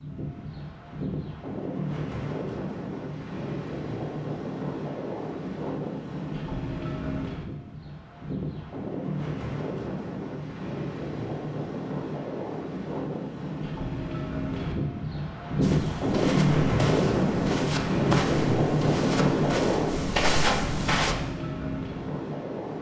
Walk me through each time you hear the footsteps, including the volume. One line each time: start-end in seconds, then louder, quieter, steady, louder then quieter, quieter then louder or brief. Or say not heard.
15.6-21.1 louder.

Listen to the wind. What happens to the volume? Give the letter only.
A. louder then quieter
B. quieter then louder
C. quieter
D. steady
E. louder
E.